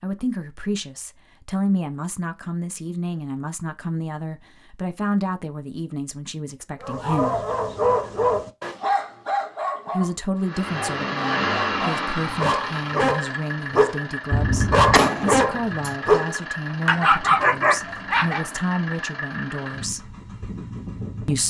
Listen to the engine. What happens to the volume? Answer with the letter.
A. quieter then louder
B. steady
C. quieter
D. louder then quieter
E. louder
C.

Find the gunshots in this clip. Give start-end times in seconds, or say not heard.
14.3-15.9.